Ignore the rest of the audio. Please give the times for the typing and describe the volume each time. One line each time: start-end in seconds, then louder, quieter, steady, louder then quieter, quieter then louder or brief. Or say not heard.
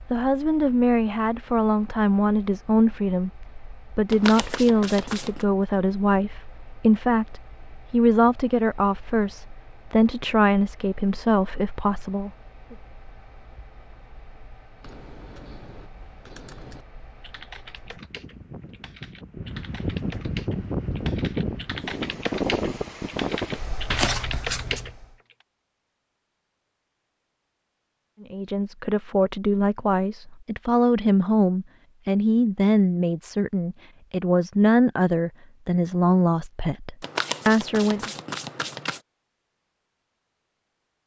14.8-25.4 louder.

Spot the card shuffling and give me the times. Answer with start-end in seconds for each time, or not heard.
4.1-5.5, 23.9-24.9, 37.0-39.0.